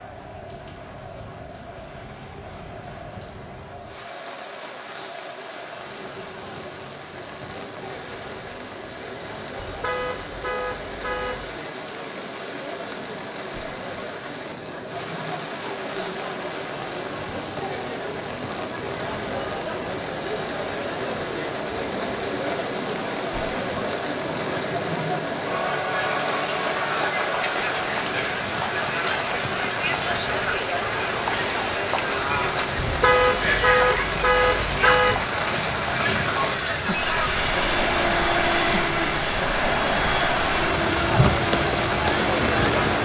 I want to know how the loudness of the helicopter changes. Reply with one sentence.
The volume of the helicopter goes up.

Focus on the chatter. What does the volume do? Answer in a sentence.
The loudness of the chatter goes up.